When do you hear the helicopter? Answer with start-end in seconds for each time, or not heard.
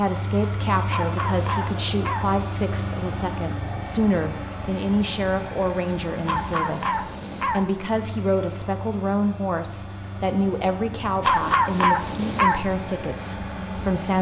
0.0-14.1.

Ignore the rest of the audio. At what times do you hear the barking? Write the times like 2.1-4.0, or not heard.
0.8-2.3, 6.2-7.7, 11.2-12.6.